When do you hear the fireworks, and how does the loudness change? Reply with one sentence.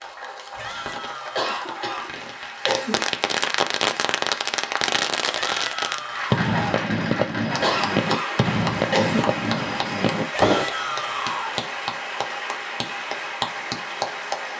The fireworks can be heard from 0.5 to 10.7 s, getting louder.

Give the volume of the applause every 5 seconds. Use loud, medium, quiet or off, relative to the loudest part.
medium, loud, loud.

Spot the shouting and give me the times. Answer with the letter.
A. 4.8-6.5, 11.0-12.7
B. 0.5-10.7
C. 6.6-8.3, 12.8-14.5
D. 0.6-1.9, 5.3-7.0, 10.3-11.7
D.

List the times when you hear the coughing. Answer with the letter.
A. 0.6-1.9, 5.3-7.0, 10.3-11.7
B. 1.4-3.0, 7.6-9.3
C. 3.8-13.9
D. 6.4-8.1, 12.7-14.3
B.